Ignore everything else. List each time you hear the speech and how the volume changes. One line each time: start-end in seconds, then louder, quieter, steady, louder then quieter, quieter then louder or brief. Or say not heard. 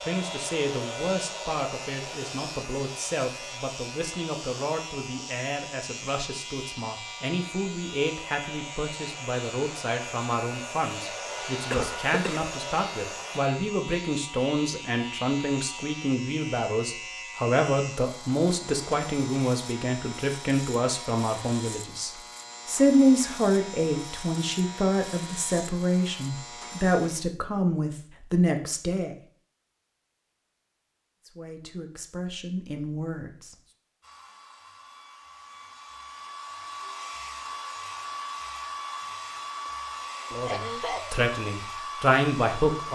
0.0-29.1 louder
31.2-33.5 brief
40.3-42.8 brief.